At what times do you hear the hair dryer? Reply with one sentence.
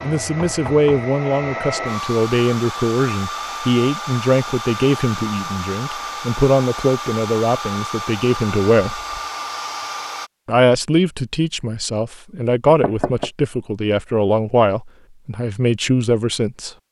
You can hear the hair dryer from 0.0 to 10.3 s.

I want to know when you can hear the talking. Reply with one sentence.
You can hear the talking from 0.0 to 9.0 s and from 10.4 to 16.7 s.